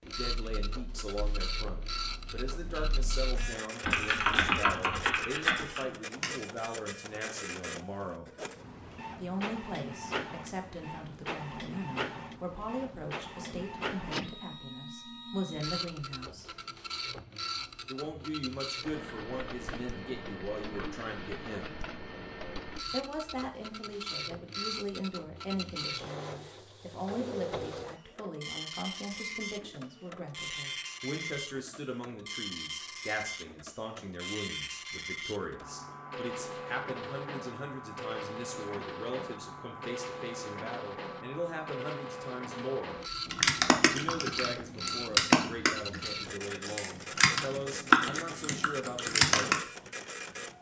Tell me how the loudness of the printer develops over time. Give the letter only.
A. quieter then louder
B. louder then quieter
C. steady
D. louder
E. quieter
C.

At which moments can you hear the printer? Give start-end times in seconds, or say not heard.
0.0-50.5.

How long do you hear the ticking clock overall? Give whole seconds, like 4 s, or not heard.
not heard.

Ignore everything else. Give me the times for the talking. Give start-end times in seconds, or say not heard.
0.0-8.3, 9.2-16.5, 17.9-21.8, 22.9-43.0, 43.9-49.6.